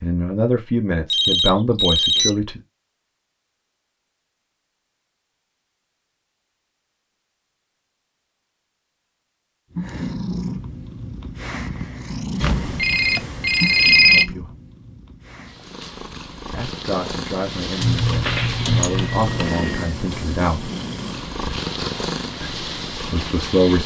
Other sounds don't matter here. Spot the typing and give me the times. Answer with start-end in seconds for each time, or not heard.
17.8-19.6.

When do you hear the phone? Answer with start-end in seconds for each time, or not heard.
1.1-2.3, 12.4-14.2, 18.2-19.9.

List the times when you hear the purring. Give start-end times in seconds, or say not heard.
9.7-23.8.